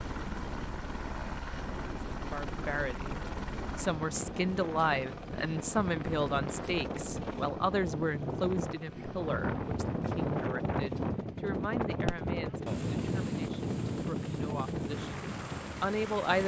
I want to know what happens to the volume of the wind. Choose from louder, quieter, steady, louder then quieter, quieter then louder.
louder.